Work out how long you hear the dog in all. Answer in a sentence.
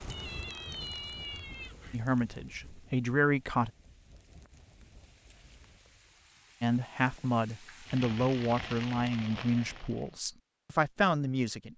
You can't hear the dog here.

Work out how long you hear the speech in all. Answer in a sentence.
You can hear the speech for 7 seconds altogether.